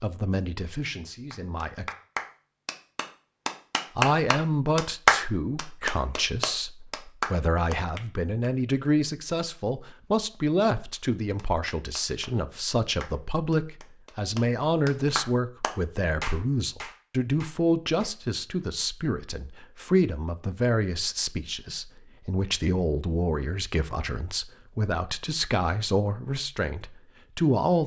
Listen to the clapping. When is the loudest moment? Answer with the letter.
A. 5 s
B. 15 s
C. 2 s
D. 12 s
A.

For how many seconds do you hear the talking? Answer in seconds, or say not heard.
26 s.